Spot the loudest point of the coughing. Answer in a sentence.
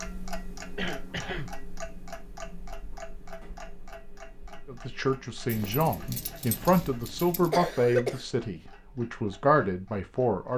The loudest moment of the coughing is at 8 seconds.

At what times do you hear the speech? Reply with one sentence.
You can hear the speech from 4.7 to 10.5 s.